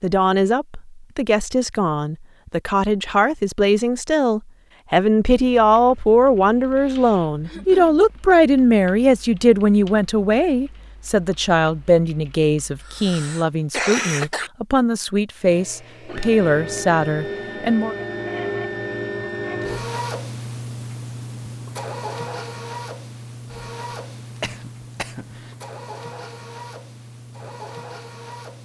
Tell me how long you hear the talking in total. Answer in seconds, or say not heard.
18 s.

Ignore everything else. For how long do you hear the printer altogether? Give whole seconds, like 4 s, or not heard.
13 s.